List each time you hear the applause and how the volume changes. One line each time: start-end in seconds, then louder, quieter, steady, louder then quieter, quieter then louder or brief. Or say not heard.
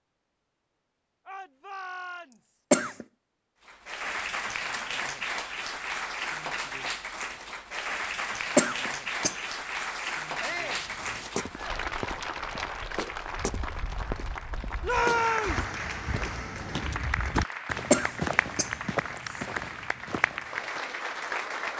3.6-21.7 steady.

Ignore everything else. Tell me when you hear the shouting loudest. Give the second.
15 s.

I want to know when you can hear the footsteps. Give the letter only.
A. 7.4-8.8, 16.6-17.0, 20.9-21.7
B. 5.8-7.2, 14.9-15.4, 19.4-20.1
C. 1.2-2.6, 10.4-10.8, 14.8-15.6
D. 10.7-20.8
D.